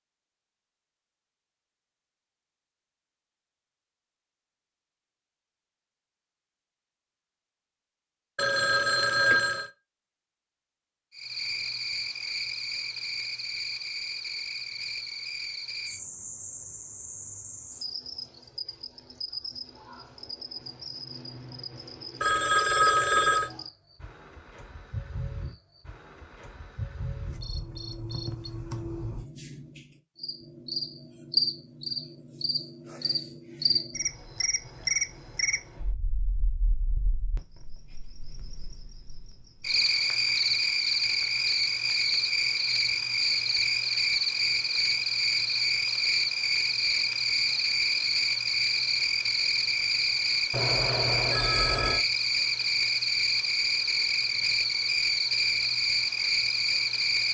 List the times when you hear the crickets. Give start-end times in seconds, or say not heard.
11.2-57.2.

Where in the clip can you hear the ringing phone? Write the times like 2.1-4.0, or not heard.
8.3-9.7, 22.2-23.5, 50.5-52.0.